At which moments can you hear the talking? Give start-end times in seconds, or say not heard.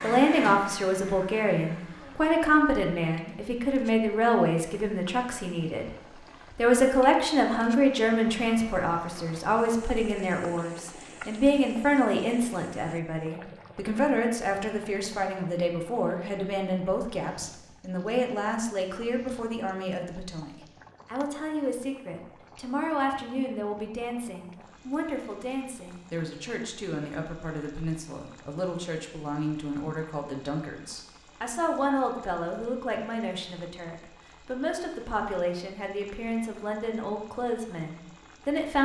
0.0-5.9, 6.5-38.7.